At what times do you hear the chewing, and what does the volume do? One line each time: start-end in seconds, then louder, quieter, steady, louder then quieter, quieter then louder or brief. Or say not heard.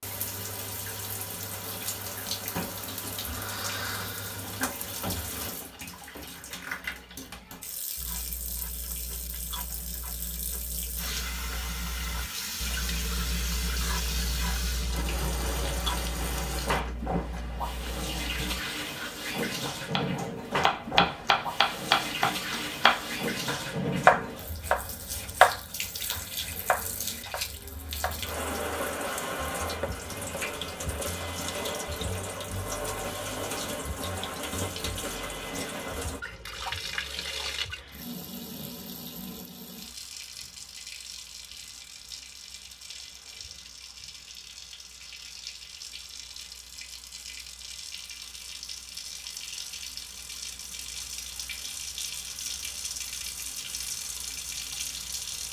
8.0-18.6 louder then quieter.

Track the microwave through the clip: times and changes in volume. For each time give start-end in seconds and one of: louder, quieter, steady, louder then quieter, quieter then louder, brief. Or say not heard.
not heard.